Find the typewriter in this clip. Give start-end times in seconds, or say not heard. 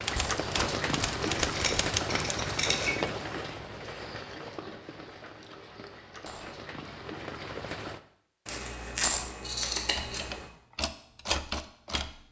0.0-2.0, 9.9-12.2.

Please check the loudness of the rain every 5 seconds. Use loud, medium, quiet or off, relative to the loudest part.
loud, medium, off.